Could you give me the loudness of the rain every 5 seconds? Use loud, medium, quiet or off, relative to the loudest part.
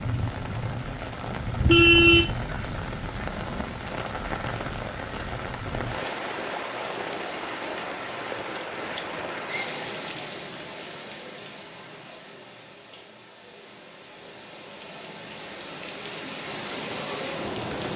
loud, loud, medium, loud.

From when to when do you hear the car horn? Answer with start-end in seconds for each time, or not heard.
1.6-2.2.